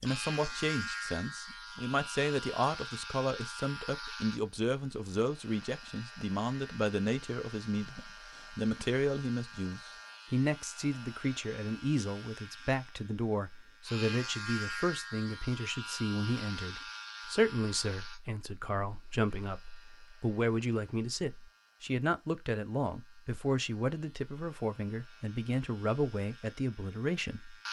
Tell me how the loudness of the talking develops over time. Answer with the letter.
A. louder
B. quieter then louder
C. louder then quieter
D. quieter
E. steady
E.